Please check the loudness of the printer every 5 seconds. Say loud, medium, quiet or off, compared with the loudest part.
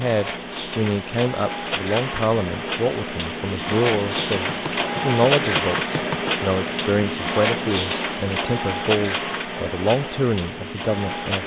loud, loud, medium.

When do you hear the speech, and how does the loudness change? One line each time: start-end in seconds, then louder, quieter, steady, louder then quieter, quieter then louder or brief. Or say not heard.
0.0-11.4 steady.